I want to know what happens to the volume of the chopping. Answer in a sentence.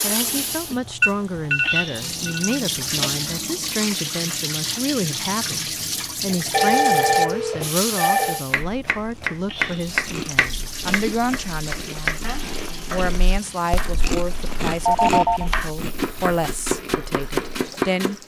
The volume of the chopping goes down, then up.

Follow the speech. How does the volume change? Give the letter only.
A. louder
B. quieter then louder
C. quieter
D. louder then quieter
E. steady
E.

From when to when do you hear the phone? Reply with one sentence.
The phone can be heard from 1.0 to 2.7 s, from 6.5 to 8.4 s and from 14.8 to 15.5 s.